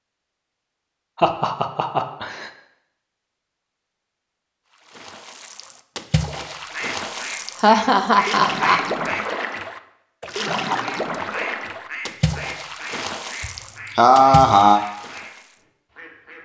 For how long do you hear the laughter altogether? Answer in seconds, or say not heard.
4 s.